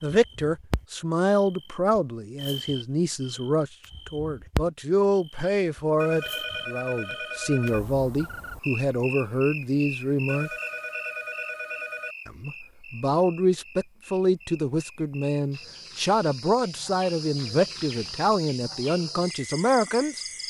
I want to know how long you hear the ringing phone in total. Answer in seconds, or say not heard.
4 s.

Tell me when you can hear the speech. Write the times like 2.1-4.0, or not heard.
0.0-10.5, 12.2-20.2.